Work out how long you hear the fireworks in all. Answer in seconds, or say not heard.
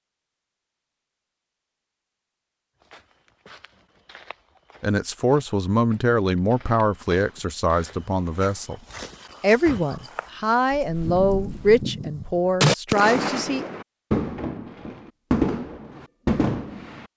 6 s.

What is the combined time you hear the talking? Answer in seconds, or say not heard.
8 s.